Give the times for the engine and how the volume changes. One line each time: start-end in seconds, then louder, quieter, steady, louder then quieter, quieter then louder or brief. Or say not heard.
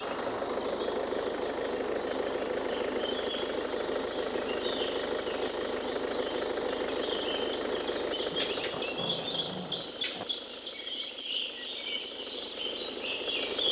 0.0-13.6 quieter.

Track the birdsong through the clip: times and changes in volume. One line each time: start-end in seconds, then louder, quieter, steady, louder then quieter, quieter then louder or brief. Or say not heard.
0.0-13.6 louder.